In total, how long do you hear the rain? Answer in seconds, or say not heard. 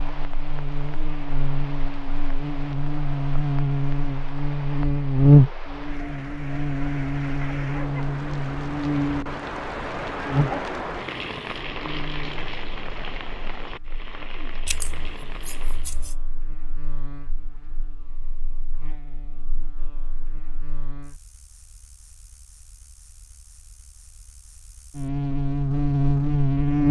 16 s.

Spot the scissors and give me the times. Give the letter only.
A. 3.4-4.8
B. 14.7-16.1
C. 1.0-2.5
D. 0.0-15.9
B.